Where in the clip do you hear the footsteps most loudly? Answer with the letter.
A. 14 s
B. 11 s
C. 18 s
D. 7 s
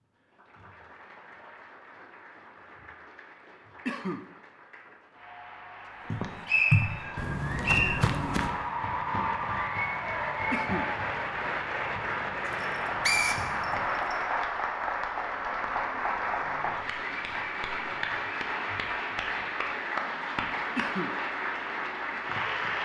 D.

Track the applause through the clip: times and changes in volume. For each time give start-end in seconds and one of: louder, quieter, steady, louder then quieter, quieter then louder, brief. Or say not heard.
0.0-22.8 louder.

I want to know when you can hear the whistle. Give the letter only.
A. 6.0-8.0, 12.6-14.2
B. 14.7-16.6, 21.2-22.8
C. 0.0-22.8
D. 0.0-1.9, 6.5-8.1
A.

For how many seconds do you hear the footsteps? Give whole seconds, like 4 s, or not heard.
8 s.